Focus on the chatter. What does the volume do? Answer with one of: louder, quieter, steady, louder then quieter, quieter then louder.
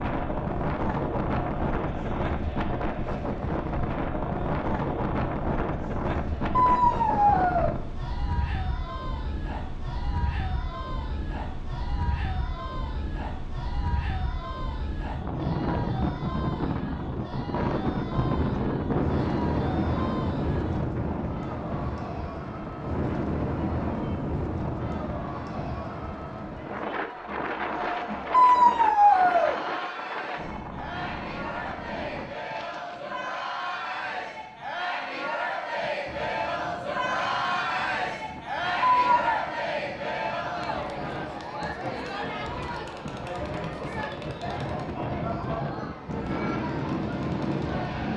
louder.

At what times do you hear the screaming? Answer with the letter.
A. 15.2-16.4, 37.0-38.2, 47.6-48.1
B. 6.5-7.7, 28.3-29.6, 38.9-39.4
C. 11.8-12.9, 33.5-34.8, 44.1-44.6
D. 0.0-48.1
B.